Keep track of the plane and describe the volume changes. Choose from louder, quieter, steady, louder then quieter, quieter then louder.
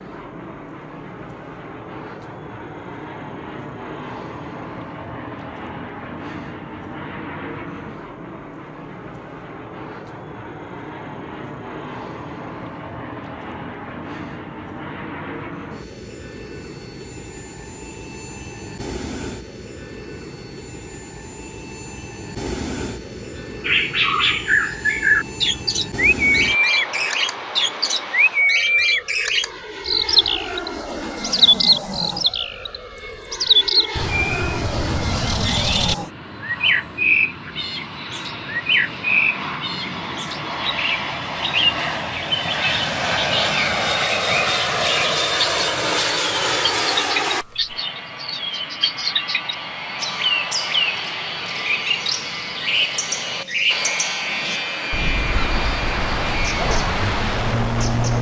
louder.